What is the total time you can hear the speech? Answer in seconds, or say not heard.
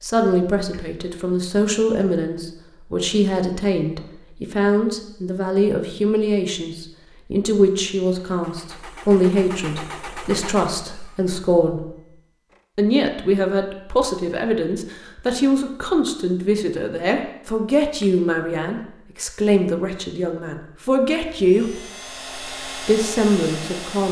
22 s.